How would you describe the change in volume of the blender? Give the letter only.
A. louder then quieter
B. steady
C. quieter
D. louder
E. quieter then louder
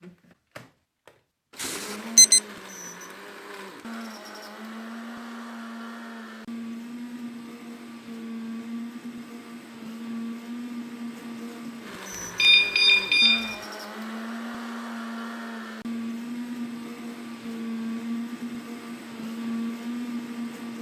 D.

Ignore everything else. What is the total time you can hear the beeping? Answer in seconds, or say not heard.
2 s.